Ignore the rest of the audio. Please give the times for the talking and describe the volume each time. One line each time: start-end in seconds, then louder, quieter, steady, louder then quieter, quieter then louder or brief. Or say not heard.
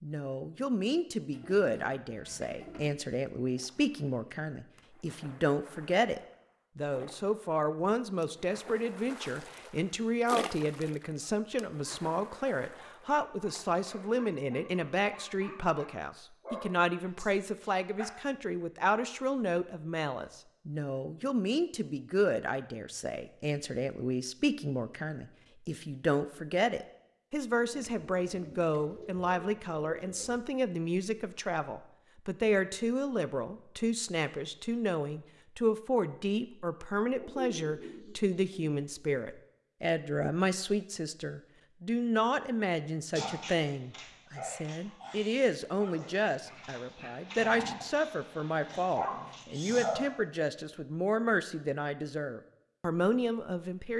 0.0-53.9 steady.